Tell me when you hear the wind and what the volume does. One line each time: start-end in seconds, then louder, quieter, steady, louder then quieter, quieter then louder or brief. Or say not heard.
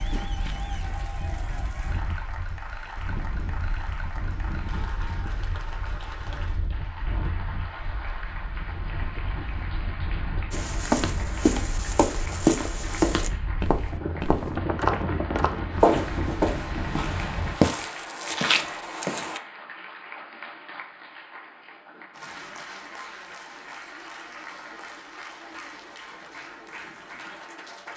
0.0-17.6 louder.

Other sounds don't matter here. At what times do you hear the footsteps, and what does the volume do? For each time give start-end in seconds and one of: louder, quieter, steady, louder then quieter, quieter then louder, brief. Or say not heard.
10.5-19.4 steady.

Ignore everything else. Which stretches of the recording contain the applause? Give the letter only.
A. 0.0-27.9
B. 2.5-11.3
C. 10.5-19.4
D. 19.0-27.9
A.